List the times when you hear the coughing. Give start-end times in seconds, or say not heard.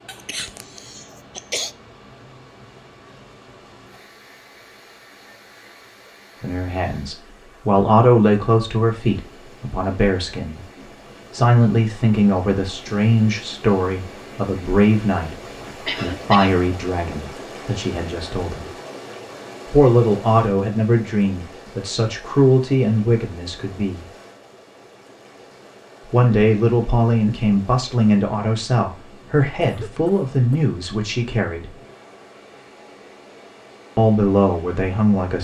0.1-1.7, 15.8-16.6, 29.6-30.6.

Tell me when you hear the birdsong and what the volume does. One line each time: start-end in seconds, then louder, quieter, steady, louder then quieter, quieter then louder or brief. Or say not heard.
not heard.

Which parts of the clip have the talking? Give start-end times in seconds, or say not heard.
6.4-10.7, 11.3-18.7, 19.6-24.1, 26.1-31.8, 34.0-35.4.